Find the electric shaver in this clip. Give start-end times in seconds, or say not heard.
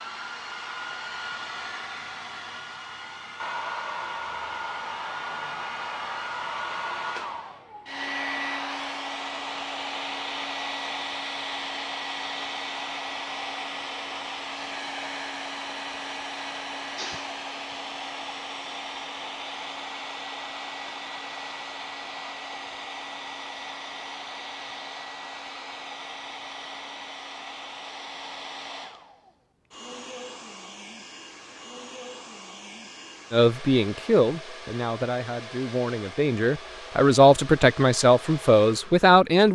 not heard.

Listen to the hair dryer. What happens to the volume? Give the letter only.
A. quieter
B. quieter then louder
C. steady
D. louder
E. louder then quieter
A.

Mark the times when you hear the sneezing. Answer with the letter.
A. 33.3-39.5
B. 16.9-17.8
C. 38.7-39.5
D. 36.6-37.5
B.